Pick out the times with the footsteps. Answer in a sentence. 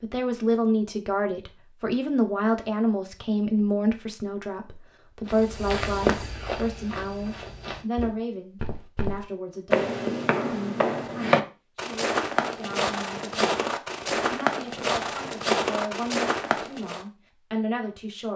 The footsteps can be heard from 5.2 to 17.1 s.